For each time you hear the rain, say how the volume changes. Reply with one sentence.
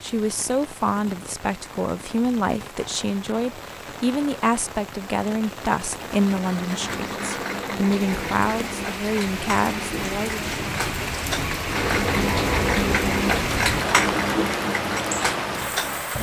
You can hear the rain from 0.0 to 16.1 s, getting louder.